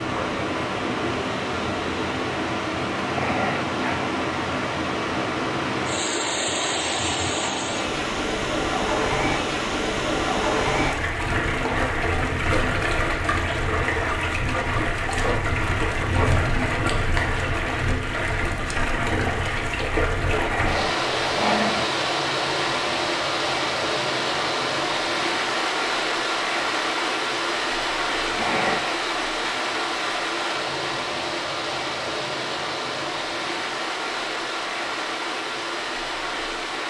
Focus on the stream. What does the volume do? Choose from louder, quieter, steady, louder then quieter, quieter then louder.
steady.